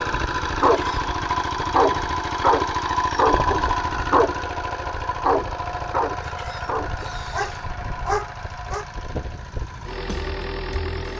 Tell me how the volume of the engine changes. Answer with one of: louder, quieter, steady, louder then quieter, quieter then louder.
quieter.